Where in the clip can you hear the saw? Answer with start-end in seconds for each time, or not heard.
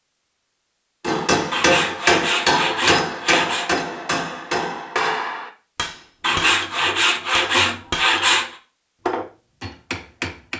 1.5-3.7, 6.2-8.6.